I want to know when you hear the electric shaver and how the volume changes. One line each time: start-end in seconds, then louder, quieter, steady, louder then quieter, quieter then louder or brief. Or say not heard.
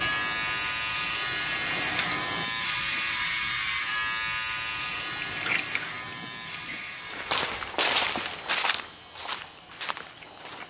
0.0-10.6 quieter.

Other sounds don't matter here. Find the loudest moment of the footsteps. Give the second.
8 s.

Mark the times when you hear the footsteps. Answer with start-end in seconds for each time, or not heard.
7.0-10.6.